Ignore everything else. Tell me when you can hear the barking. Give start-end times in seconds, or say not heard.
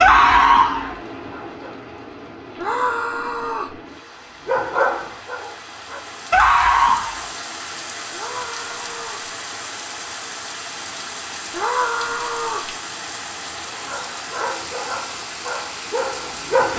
0.0-1.7, 4.5-7.2, 13.7-16.7.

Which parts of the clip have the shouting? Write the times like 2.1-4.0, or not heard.
2.5-3.8, 8.1-9.3, 11.5-12.7.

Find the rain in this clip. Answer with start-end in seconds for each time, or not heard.
0.0-16.7.